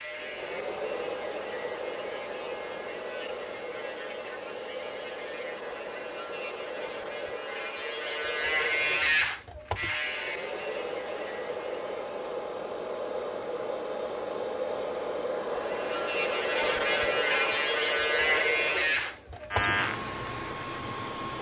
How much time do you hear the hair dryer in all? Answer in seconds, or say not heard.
21 s.